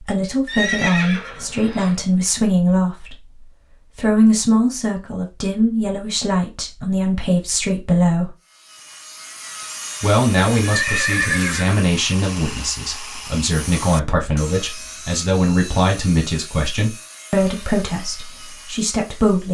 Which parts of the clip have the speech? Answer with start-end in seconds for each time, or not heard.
0.0-8.3, 10.0-19.4.